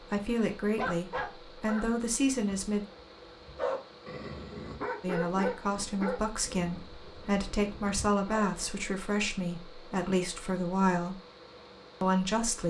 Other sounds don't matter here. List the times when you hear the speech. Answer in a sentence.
You can hear the speech from 0.1 to 2.9 s, from 5.0 to 11.2 s and from 12.0 to 12.6 s.